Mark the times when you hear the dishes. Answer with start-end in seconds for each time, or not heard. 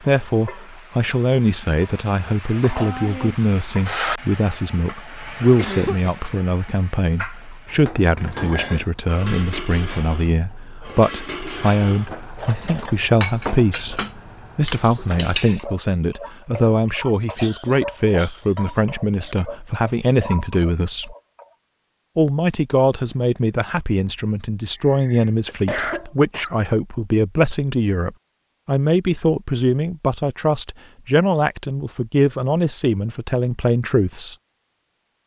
8.2-15.7.